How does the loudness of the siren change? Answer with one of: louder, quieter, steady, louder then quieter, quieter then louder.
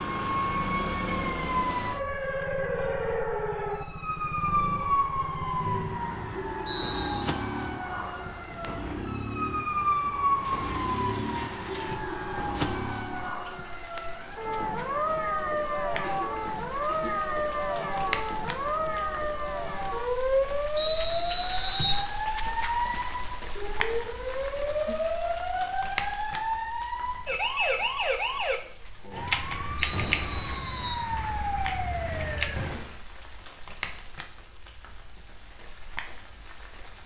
steady.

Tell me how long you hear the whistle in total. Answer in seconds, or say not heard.
4 s.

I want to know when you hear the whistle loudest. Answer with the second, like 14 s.
21 s.